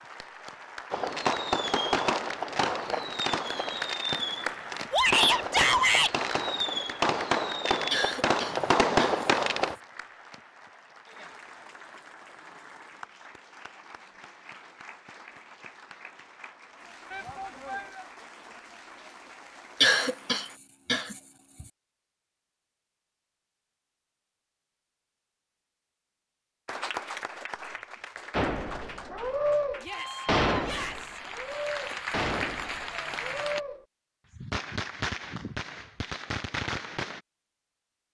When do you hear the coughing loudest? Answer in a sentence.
The loudest moment of the coughing is at 20 seconds.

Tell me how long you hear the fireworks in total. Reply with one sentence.
You can hear the fireworks for 18 seconds altogether.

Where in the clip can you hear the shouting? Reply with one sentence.
The shouting can be heard from 4.9 to 6.2 s, from 17.1 to 18.1 s and from 29.8 to 31.2 s.